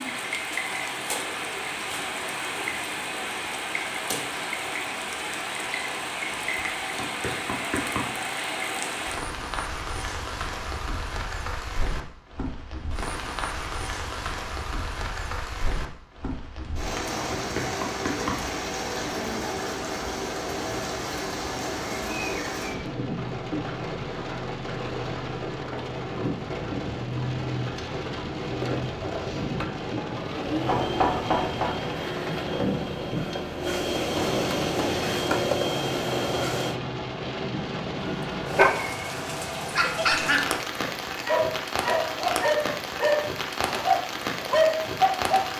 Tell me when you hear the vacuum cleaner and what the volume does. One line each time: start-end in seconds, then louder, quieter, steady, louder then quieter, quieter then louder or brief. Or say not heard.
28.5-36.8 louder.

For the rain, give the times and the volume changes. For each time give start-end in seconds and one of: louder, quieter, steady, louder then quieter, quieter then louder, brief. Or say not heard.
0.0-45.5 steady.